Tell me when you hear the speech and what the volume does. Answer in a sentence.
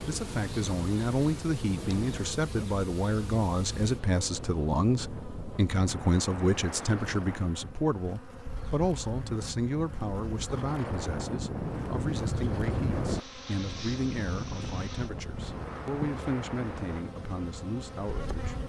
You can hear the speech from 0.1 to 18.6 s, getting quieter.